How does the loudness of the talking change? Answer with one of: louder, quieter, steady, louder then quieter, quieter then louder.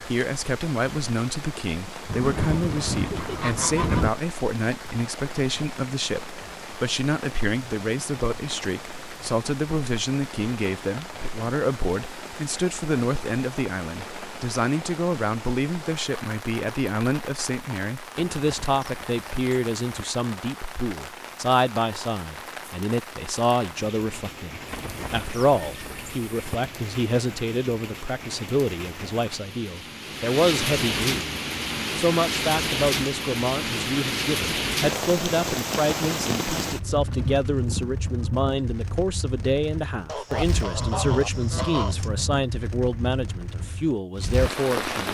steady.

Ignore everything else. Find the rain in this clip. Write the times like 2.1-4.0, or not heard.
0.0-45.0.